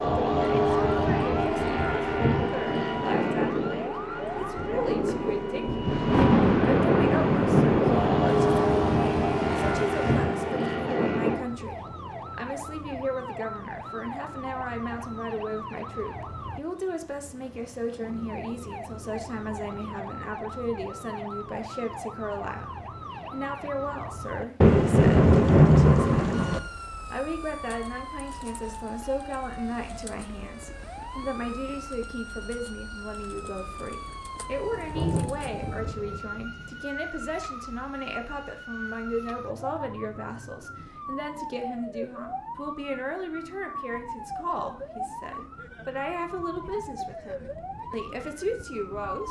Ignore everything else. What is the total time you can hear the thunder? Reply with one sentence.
The thunder can be heard for 10 seconds in total.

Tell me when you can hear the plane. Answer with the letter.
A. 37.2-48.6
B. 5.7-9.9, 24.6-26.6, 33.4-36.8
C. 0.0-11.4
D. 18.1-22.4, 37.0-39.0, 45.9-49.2
C.